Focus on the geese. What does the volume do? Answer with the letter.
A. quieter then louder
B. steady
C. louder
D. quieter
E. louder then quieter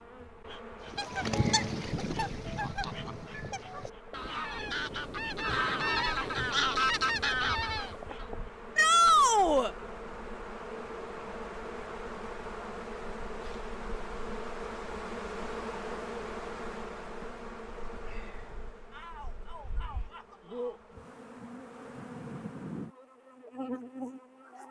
A.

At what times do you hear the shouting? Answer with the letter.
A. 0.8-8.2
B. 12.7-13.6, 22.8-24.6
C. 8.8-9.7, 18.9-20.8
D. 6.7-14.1
C.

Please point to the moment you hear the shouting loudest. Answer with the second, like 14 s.
9 s.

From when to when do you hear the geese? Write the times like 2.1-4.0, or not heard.
0.8-8.2.